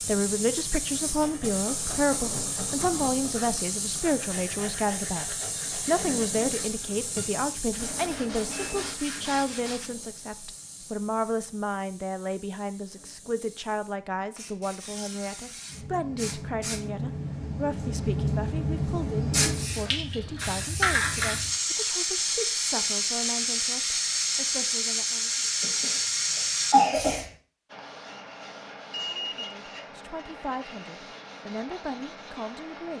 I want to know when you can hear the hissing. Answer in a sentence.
You can hear the hissing from 0.0 to 27.3 s.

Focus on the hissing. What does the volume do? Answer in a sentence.
The loudness of the hissing goes down, then up.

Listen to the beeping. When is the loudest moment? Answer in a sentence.
The volume of the beeping peaks at 29 seconds.